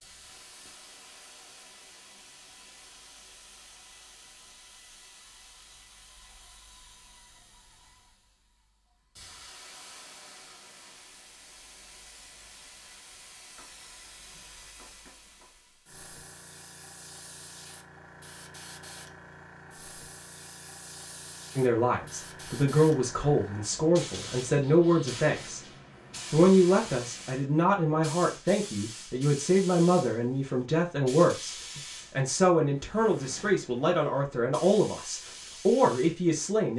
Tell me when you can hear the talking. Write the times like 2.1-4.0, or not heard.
21.6-25.7, 26.3-36.7.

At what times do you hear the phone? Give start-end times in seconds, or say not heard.
not heard.